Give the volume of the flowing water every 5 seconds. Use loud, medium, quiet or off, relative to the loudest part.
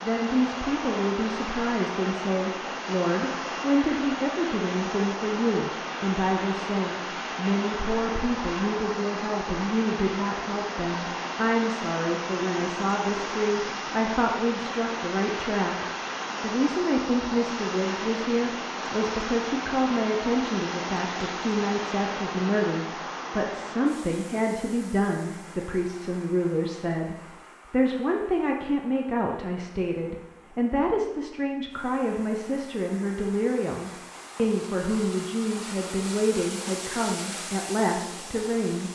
loud, loud, loud, loud, loud, quiet, quiet, medium.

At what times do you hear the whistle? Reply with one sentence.
You can't hear the whistle here.